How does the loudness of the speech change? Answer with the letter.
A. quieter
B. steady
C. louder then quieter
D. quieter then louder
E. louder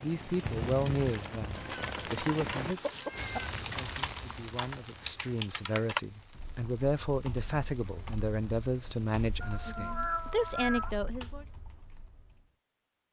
D.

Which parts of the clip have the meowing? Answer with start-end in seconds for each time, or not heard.
1.5-3.5, 9.4-10.9.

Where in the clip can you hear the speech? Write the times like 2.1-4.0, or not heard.
0.0-11.4.